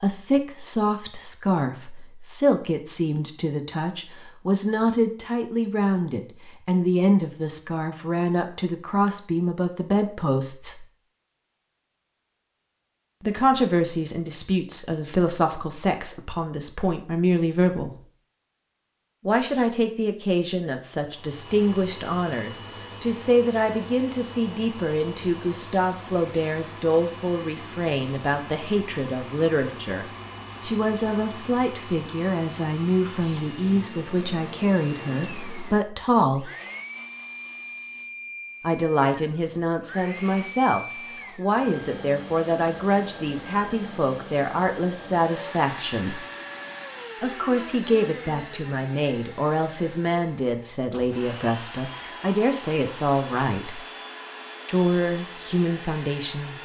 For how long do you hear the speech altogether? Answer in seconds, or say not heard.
49 s.